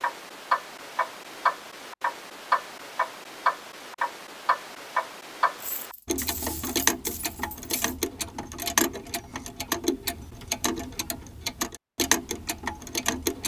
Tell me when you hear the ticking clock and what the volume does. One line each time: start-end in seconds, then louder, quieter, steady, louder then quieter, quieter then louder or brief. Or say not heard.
0.0-13.4 steady.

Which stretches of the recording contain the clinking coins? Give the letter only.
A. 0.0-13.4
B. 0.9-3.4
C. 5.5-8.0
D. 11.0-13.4
C.